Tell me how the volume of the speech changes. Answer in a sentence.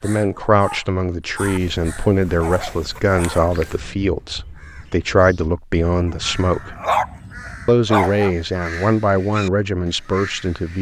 The loudness of the speech stays about the same.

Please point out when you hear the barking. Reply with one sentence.
You can hear the barking from 1.4 to 3.8 s and from 6.1 to 8.3 s.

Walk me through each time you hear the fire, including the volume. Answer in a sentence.
You can't hear the fire here.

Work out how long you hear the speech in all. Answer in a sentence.
The speech can be heard for 10 seconds in total.